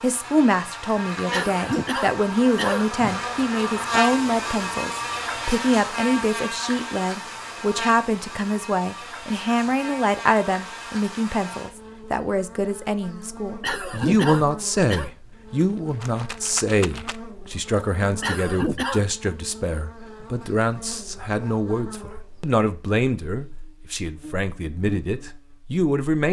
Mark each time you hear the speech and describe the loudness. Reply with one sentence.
The speech can be heard from 0.0 to 26.2 s, at a steady volume.